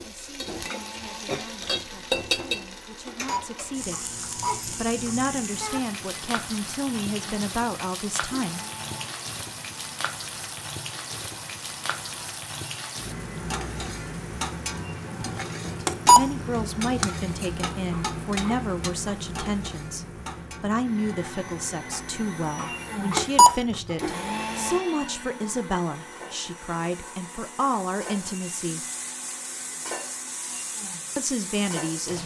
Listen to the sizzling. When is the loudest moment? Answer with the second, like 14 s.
2 s.